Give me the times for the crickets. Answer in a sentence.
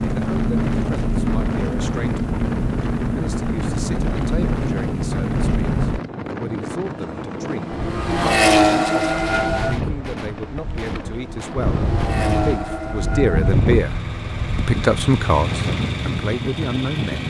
The crickets can't be heard in this clip.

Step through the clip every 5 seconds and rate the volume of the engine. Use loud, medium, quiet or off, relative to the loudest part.
loud, loud, medium, medium.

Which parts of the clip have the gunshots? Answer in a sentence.
The gunshots can be heard from 9.2 to 12.1 s.